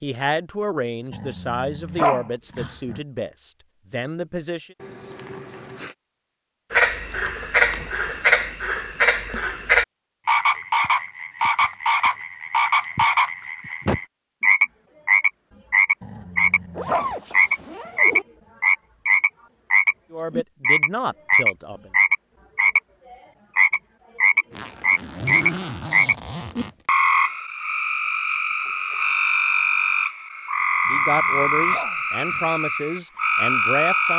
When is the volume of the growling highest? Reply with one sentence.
The loudest moment of the growling is at 2 seconds.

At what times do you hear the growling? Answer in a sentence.
The growling can be heard from 1.1 to 3.0 s, from 16.0 to 17.1 s and from 30.9 to 32.5 s.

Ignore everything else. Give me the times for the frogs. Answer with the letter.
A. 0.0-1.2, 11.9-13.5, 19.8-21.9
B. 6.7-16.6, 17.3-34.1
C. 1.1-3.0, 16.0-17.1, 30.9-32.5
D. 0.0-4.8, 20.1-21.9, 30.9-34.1
B.